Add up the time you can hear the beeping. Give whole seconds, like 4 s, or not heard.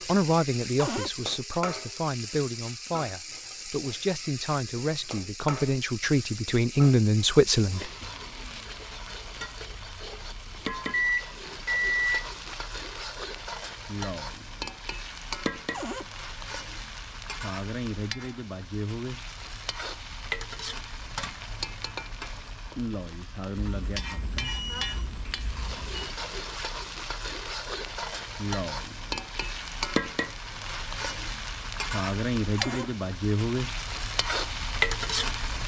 4 s.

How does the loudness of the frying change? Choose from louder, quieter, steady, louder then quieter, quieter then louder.
louder.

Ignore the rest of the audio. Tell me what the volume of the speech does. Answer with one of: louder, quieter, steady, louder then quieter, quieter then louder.
louder.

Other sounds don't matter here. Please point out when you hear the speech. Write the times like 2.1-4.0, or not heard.
0.1-7.9.